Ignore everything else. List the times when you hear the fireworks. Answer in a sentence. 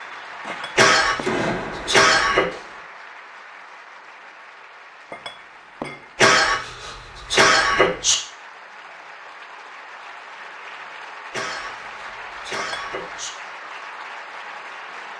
The fireworks can be heard from 0.0 to 2.8 s.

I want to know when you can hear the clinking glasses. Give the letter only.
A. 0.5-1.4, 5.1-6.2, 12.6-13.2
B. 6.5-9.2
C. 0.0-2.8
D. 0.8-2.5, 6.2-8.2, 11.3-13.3
A.